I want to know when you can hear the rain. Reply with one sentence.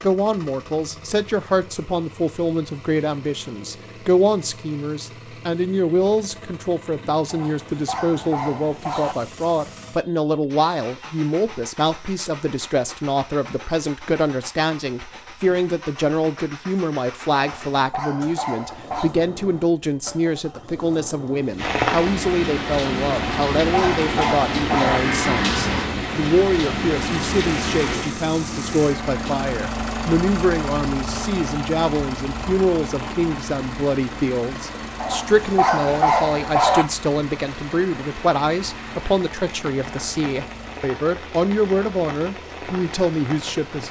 The rain can be heard from 21.6 to 43.8 s.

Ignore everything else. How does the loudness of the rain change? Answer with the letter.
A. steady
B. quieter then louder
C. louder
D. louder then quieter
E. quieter
E.